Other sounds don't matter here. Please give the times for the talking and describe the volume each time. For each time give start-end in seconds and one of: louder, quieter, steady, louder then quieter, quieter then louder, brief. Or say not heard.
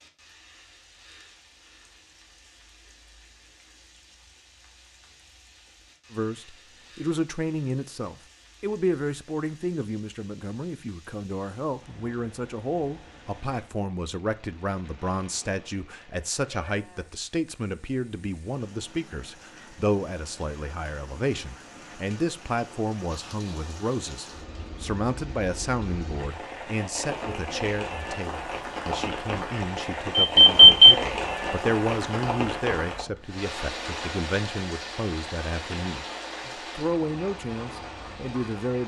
6.1-38.8 steady.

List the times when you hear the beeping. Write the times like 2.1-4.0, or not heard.
30.2-30.9.